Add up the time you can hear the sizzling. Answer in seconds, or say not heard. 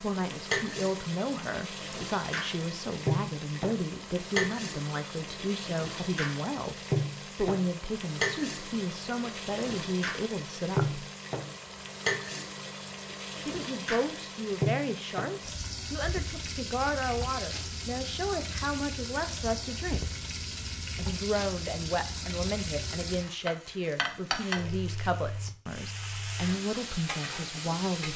28 s.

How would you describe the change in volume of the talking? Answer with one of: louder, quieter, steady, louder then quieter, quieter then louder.
steady.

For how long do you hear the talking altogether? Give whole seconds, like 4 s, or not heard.
25 s.